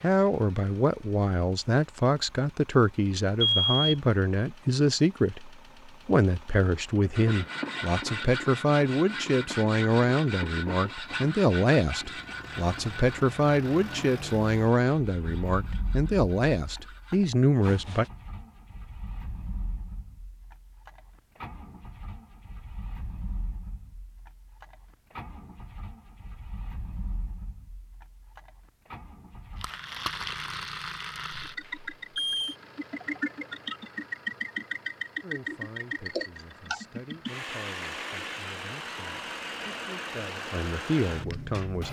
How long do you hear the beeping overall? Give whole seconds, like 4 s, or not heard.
2 s.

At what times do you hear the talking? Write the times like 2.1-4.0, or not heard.
0.0-18.1, 35.2-41.8.